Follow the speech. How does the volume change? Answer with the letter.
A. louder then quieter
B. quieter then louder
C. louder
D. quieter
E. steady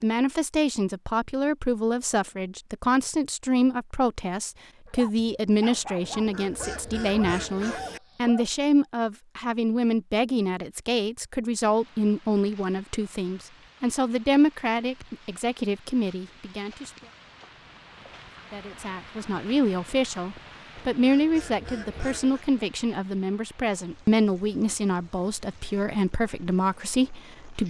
E.